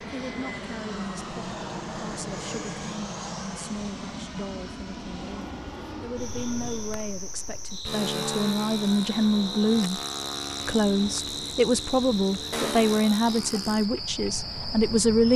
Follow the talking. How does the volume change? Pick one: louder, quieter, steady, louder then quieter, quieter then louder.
louder.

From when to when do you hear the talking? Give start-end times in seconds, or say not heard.
0.0-10.0, 10.7-15.3.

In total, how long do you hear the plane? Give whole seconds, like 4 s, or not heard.
15 s.